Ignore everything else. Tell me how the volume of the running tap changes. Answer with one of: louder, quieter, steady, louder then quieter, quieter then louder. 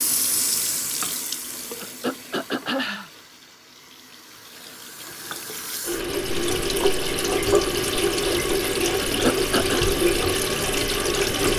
quieter then louder.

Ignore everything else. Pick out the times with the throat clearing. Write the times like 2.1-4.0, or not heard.
1.8-3.1, 8.9-9.8.